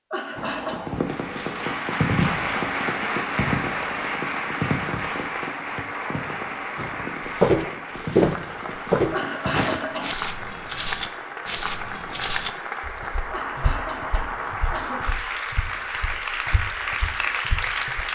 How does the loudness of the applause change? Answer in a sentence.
The loudness of the applause goes down, then up.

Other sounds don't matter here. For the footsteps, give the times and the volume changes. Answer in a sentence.
The footsteps can be heard from 6.8 to 18.0 s, getting quieter.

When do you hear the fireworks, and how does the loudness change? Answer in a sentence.
The fireworks can be heard from 0.3 to 9.7 s, getting quieter.